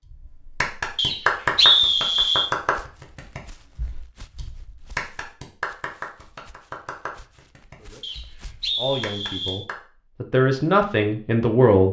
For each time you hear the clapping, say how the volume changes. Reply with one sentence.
The clapping can be heard from 0.1 to 9.8 s, getting quieter.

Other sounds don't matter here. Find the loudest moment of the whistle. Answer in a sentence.
The loudest moment of the whistle is at 2 seconds.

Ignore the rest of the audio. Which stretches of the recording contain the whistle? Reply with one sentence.
The whistle can be heard from 0.9 to 2.5 s and from 8.0 to 9.7 s.